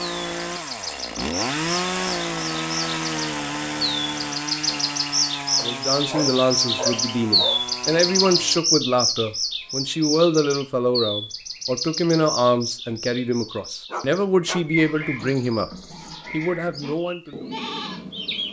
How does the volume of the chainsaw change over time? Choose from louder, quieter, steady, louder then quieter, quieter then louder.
quieter.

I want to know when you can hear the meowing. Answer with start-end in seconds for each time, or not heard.
not heard.